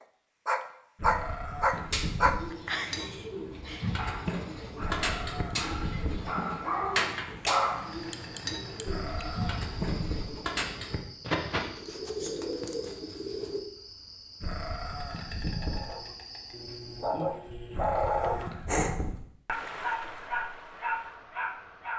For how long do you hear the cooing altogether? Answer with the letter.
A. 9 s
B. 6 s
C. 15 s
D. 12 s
D.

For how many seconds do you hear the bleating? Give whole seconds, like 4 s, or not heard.
8 s.